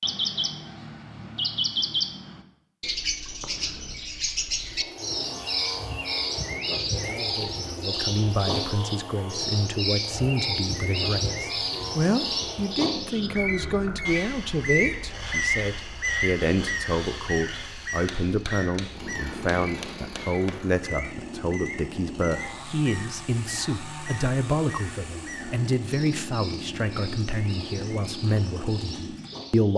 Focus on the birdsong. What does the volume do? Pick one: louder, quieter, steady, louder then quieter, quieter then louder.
quieter.